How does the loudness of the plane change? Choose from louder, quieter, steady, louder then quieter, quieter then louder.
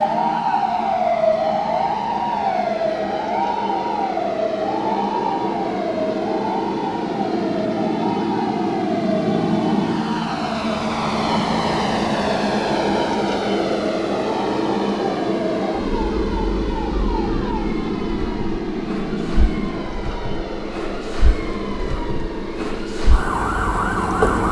louder then quieter.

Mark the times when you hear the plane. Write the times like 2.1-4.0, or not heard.
0.0-24.4.